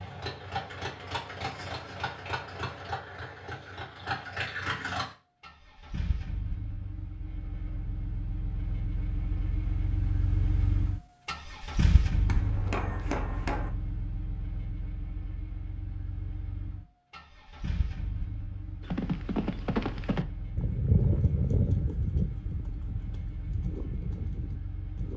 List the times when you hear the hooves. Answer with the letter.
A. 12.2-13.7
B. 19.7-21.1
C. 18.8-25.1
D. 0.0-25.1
C.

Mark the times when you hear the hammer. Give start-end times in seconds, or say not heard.
12.2-13.7.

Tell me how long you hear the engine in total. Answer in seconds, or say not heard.
25 s.